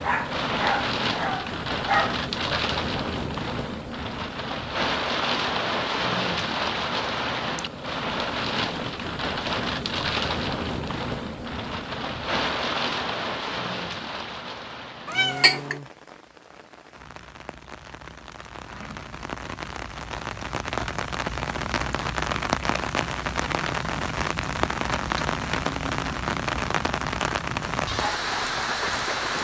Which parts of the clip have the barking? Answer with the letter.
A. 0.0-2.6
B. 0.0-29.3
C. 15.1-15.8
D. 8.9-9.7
A.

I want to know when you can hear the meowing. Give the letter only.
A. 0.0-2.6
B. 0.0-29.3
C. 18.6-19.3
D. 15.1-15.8
D.